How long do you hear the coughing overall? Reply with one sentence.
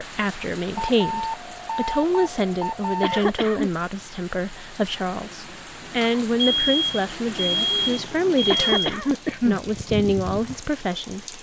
The coughing can be heard for 2 seconds in total.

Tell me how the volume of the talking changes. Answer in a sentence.
The loudness of the talking stays about the same.